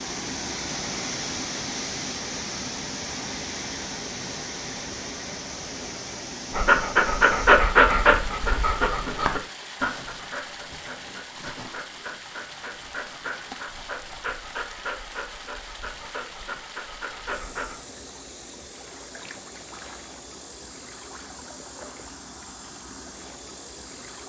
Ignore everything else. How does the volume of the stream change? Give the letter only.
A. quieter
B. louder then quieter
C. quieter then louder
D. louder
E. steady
A.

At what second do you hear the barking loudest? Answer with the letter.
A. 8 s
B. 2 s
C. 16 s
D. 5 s
A.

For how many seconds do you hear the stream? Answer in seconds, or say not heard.
24 s.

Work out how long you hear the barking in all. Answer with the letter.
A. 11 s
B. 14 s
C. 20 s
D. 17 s
A.